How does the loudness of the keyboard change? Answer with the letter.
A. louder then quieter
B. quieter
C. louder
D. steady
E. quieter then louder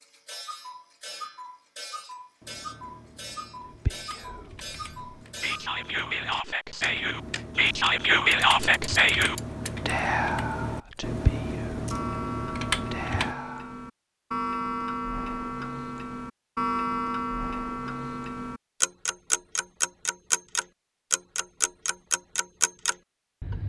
C.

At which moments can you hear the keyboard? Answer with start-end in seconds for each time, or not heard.
2.4-13.3.